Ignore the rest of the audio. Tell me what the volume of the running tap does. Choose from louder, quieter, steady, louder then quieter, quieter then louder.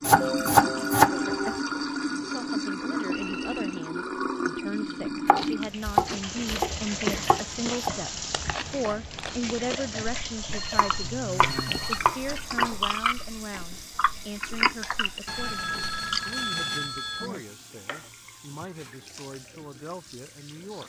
quieter.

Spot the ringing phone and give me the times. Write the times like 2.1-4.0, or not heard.
3.1-3.9, 10.5-12.0, 15.2-17.3.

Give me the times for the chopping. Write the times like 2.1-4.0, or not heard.
0.0-1.6, 5.2-7.9, 10.5-12.8, 17.9-19.0.